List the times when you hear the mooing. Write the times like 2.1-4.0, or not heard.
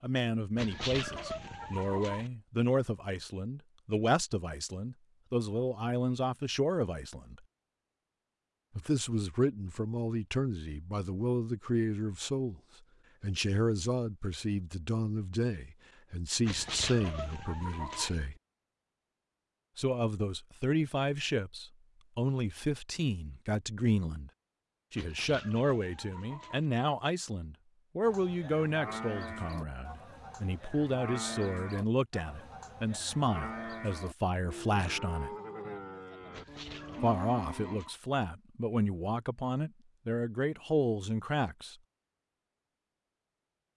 28.0-37.8.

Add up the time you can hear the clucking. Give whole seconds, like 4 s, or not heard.
7 s.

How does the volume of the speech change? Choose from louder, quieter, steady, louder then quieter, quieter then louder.
steady.